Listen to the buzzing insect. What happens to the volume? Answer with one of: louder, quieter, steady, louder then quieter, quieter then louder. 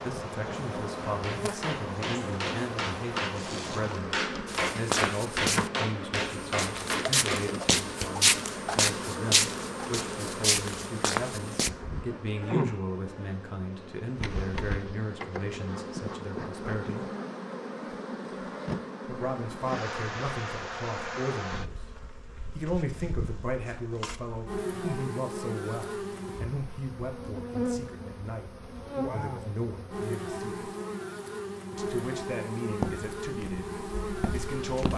steady.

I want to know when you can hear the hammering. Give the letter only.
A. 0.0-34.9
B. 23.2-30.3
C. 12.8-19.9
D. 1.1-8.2
D.